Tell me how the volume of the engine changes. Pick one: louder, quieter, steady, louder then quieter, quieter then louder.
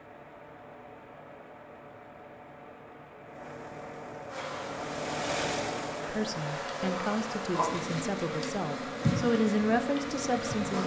louder then quieter.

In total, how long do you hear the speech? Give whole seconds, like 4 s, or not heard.
5 s.